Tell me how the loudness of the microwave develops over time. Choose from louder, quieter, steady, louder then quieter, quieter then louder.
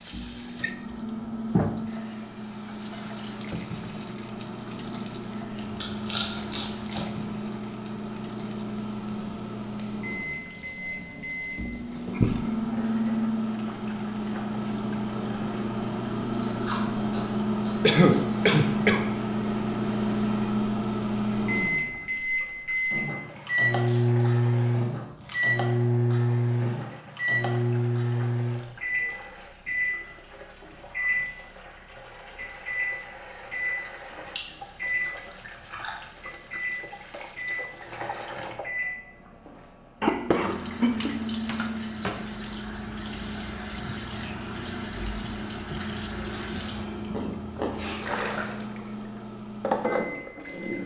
louder then quieter.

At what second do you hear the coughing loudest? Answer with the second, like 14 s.
18 s.